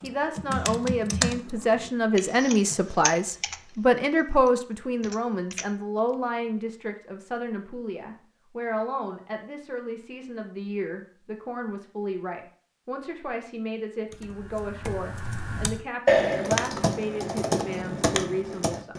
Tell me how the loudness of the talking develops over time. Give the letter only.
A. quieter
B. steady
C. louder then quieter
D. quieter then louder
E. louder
A.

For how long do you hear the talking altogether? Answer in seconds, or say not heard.
19 s.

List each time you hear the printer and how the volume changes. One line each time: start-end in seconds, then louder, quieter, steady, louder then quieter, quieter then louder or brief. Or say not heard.
not heard.